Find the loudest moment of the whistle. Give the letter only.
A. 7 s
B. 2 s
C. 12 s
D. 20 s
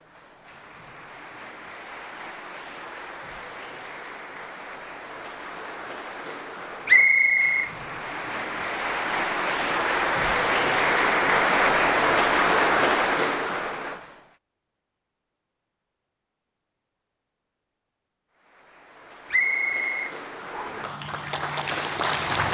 A.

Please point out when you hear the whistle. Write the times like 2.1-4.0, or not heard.
6.8-7.7, 19.3-20.9.